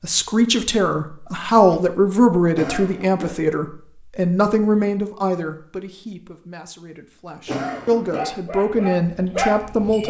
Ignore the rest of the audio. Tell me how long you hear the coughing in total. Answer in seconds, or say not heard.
2 s.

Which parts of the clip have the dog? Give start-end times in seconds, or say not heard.
8.1-10.0.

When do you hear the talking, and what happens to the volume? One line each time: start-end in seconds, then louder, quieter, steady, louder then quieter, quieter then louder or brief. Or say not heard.
0.0-10.0 quieter then louder.